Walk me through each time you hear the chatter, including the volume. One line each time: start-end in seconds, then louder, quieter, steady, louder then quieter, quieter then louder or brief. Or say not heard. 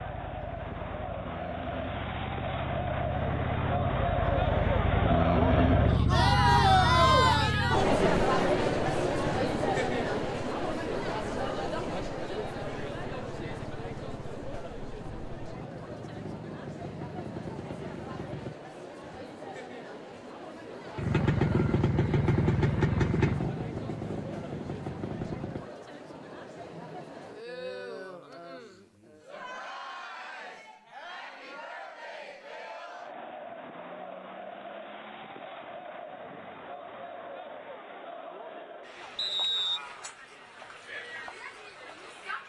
0.0-42.4 quieter.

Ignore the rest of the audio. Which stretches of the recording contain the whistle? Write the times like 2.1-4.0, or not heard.
39.1-39.8.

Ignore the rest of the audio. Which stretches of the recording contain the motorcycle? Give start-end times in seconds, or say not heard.
0.0-18.6, 20.9-25.6.